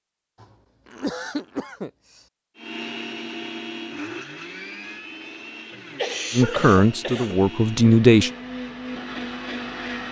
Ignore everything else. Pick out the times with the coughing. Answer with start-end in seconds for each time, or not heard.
0.4-2.2, 5.7-7.5.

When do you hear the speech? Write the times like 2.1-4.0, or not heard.
6.3-8.3.